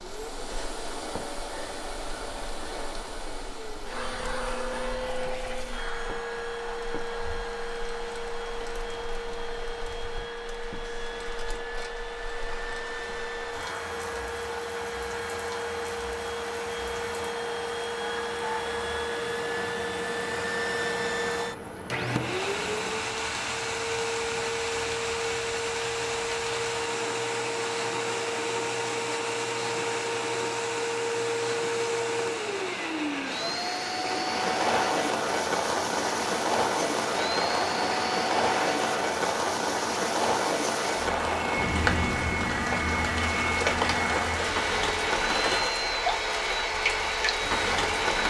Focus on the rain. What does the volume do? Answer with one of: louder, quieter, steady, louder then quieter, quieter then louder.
louder.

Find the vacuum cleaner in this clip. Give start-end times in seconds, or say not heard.
0.0-48.2.